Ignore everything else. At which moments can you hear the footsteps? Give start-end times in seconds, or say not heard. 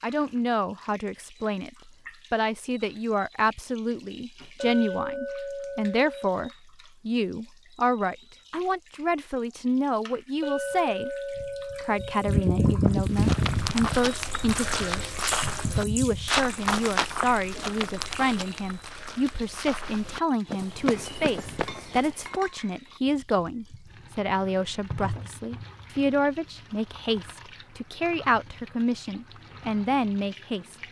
12.8-22.4.